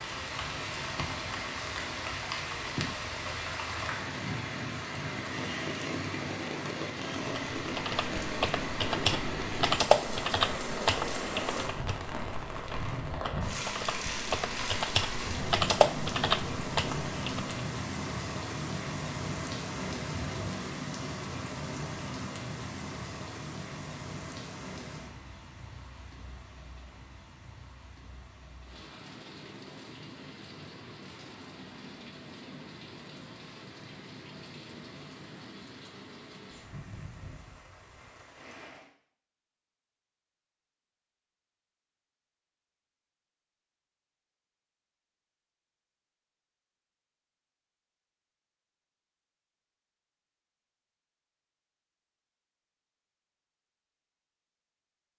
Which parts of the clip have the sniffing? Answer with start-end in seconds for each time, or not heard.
not heard.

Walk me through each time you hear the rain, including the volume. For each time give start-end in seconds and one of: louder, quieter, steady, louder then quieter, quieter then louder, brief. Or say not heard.
0.0-38.9 quieter.